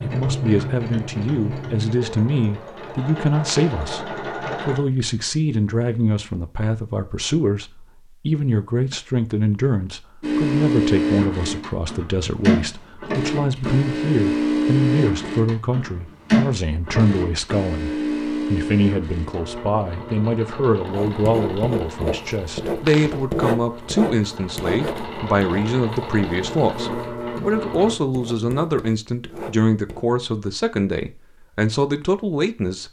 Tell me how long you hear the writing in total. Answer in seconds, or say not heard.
9 s.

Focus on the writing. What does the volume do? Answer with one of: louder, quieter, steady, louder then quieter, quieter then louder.
quieter.